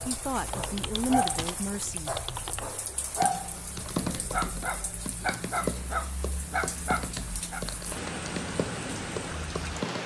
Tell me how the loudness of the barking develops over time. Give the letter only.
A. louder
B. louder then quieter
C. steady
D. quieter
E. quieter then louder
C.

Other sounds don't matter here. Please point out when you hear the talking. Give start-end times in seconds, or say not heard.
0.0-2.2.